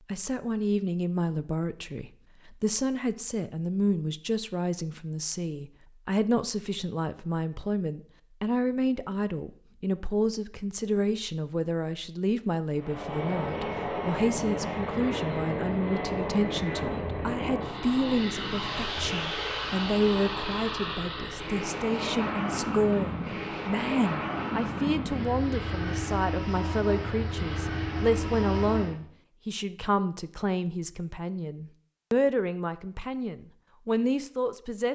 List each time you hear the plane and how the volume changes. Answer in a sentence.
You can hear the plane from 12.7 to 29.1 s, at a steady volume.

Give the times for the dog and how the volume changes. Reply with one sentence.
The dog can't be heard in this clip.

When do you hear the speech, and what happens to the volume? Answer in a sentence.
The speech can be heard from 0.1 to 34.9 s, at a steady volume.